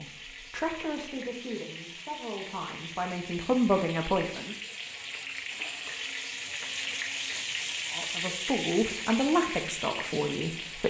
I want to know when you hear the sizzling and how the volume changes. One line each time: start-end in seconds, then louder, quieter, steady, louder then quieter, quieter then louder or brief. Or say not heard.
0.0-10.8 louder.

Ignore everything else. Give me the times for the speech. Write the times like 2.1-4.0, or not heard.
0.0-4.5, 7.9-10.8.